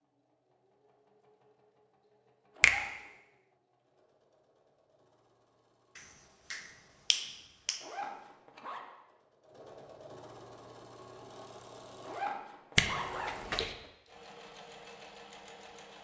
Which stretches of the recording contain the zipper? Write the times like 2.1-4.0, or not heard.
2.5-3.1, 7.8-8.9, 12.0-13.9.